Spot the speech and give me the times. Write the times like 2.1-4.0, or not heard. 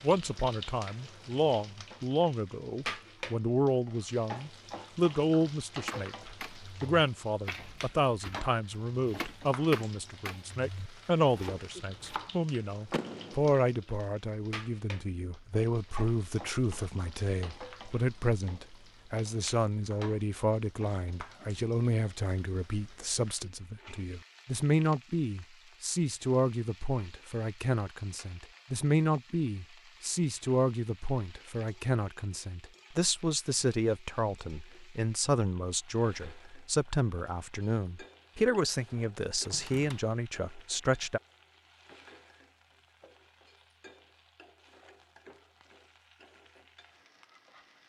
0.0-41.2.